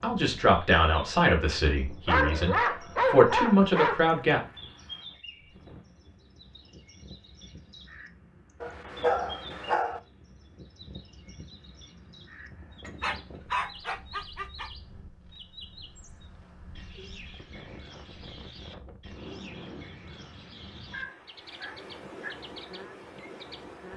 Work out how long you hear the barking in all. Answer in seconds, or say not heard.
7 s.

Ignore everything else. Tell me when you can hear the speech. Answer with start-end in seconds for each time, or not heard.
0.0-4.4.